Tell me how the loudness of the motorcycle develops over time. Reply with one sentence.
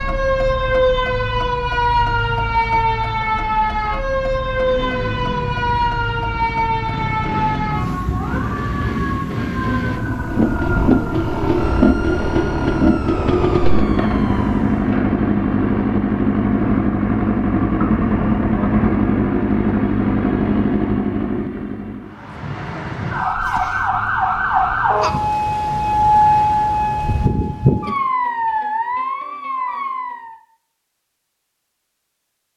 The volume of the motorcycle goes up.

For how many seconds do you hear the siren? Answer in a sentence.
You can hear the siren for 23 seconds altogether.